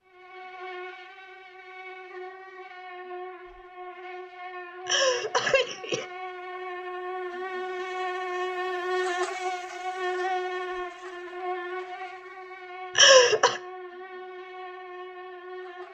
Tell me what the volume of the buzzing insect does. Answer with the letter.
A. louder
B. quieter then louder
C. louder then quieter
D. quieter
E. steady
C.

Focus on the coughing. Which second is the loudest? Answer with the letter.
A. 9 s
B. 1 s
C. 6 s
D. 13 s
D.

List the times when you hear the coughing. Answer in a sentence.
The coughing can be heard from 4.8 to 6.0 s and from 12.9 to 13.6 s.